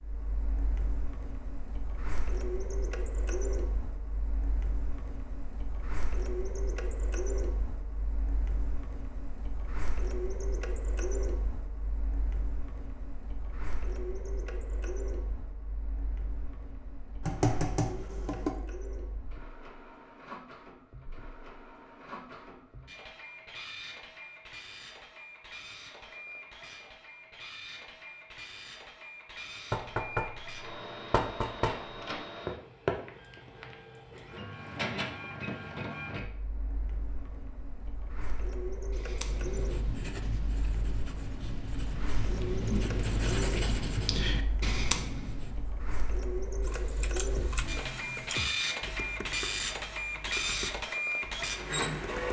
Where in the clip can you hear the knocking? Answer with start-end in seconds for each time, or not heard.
17.2-18.6, 29.7-31.8.